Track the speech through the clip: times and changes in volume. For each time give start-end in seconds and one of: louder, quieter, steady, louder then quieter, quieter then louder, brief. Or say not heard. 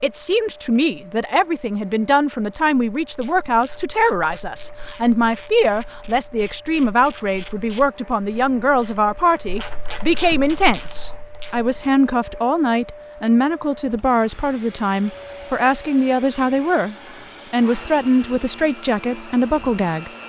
0.0-20.1 steady.